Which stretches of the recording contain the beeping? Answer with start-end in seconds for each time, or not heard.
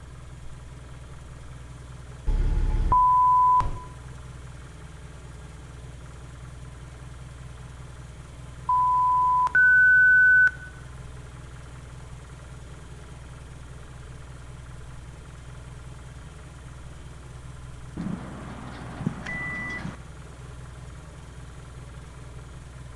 2.2-3.8, 8.7-10.5, 17.9-19.9.